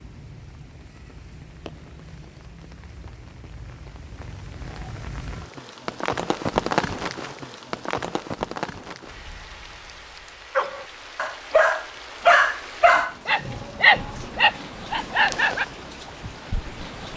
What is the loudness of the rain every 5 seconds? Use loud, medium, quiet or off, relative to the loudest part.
quiet, loud, medium, medium.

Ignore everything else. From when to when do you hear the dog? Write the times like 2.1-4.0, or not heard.
10.6-15.7.